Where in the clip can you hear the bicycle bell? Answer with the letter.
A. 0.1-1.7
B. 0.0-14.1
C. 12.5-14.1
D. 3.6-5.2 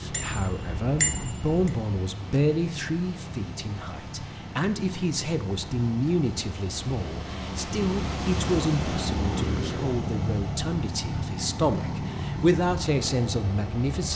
A.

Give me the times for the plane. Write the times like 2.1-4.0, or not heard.
0.0-14.1.